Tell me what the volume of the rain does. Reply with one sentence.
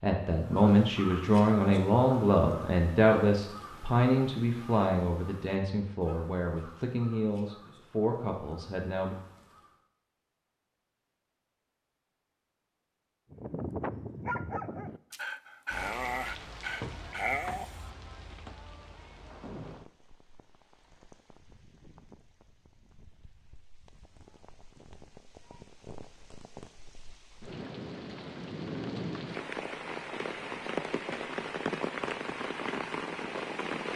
The loudness of the rain goes down, then up.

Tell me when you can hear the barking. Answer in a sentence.
You can hear the barking from 13.3 to 17.9 s.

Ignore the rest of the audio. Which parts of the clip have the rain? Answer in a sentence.
The rain can be heard from 15.7 to 33.9 s.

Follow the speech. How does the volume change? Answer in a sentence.
The loudness of the speech goes down.